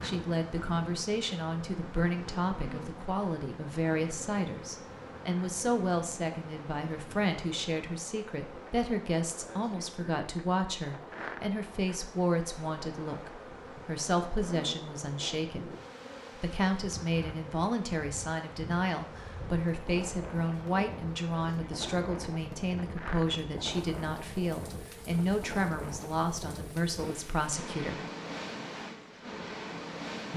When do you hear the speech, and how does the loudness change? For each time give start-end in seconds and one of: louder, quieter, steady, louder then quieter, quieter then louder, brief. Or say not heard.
0.0-15.8 steady
16.4-28.1 steady.